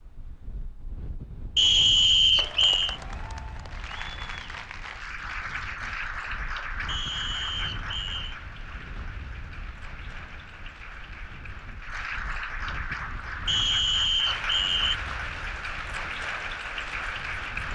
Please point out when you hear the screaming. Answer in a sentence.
You can't hear the screaming here.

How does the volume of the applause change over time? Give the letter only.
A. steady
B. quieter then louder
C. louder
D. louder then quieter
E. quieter
B.